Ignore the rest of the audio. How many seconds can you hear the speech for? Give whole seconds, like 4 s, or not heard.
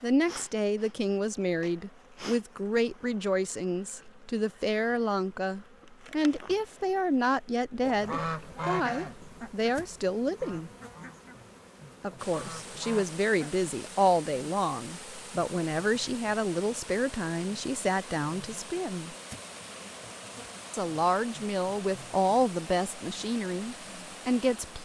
22 s.